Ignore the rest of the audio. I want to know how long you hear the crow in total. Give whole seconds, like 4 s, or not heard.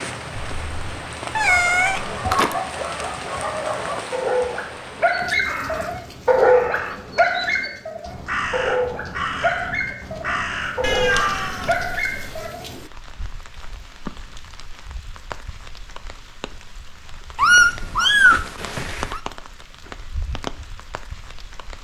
7 s.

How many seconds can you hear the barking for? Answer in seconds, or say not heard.
11 s.